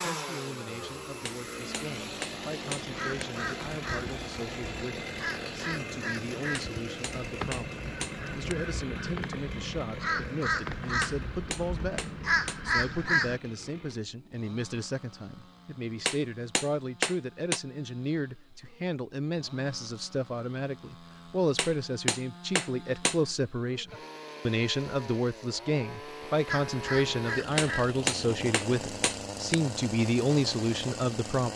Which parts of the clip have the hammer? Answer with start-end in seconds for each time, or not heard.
1.2-3.2, 6.5-8.6, 11.0-12.6, 16.1-17.6, 21.6-23.2, 27.6-29.6.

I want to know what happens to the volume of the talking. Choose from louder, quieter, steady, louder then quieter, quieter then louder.
louder.